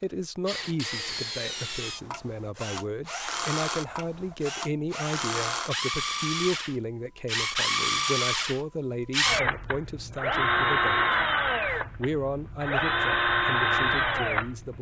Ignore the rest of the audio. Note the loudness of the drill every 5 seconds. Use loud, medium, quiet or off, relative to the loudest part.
medium, loud, loud.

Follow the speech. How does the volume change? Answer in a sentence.
The volume of the speech stays about the same.